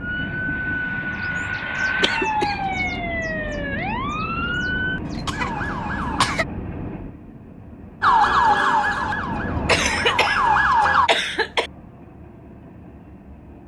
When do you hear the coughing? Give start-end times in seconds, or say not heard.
2.0-2.5, 4.8-6.5, 9.7-10.4, 11.1-11.7.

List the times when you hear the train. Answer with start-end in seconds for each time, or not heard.
0.0-13.6.